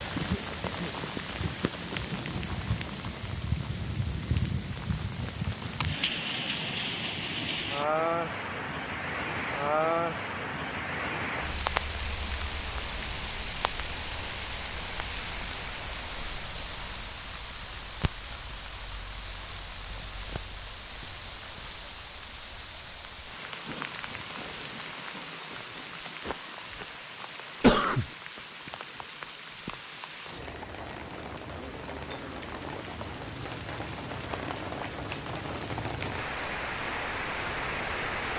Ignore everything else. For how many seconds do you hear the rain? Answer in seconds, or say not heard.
38 s.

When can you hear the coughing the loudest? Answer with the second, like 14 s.
28 s.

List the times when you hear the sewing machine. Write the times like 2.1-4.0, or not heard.
not heard.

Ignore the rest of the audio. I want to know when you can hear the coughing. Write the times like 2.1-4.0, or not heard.
0.1-2.2, 27.6-28.1.